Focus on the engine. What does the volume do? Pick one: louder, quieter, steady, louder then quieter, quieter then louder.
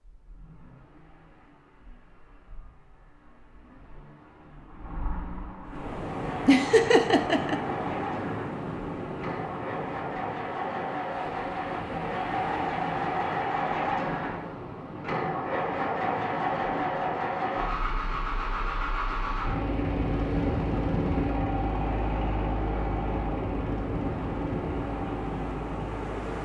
louder.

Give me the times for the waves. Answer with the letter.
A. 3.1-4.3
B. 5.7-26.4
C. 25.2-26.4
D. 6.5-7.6
B.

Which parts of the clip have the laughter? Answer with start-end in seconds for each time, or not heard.
6.5-7.6.